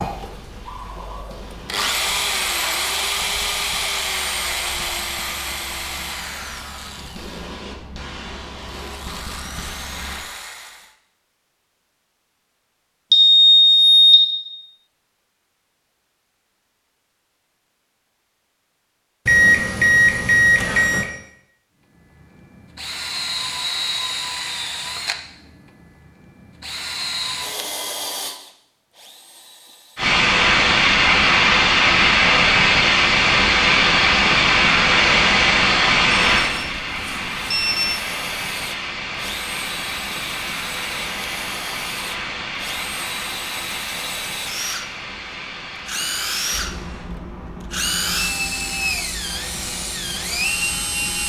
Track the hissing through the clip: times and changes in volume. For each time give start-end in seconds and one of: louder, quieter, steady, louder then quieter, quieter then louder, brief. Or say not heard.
0.0-10.2 louder
29.9-51.2 quieter.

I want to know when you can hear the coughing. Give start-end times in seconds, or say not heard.
not heard.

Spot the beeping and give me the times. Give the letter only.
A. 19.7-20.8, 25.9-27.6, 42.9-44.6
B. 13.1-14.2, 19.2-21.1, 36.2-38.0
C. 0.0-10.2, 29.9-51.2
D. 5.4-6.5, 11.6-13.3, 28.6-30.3
B.